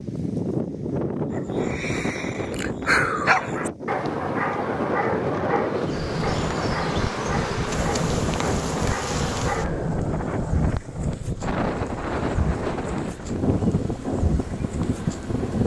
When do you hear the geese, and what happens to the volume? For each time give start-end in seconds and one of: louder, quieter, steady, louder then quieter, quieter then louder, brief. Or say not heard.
not heard.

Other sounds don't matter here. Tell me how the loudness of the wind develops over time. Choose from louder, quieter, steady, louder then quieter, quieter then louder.
steady.